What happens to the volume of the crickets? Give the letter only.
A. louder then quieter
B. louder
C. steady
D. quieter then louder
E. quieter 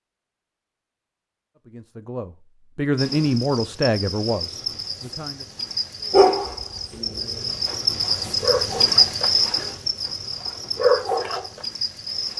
A.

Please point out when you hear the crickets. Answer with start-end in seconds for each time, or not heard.
3.0-12.3.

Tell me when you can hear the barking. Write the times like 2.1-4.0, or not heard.
6.1-11.4.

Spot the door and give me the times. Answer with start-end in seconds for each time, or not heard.
not heard.